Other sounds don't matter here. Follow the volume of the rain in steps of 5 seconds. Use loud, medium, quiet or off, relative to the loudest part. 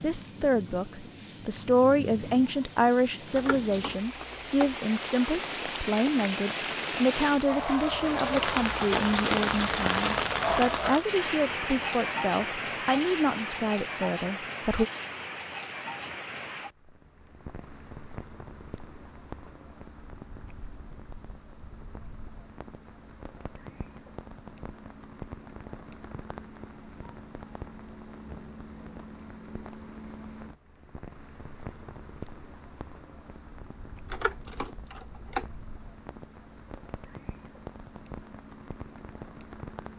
medium, loud, loud, quiet, quiet, quiet, quiet, quiet.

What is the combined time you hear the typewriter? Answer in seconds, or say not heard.
3 s.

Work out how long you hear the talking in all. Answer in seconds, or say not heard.
15 s.